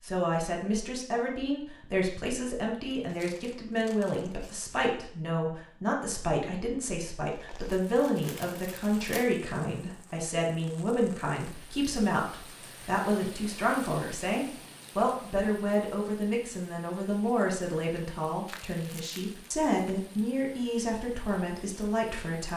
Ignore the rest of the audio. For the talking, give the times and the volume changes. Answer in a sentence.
You can hear the talking from 0.0 to 22.5 s, at a steady volume.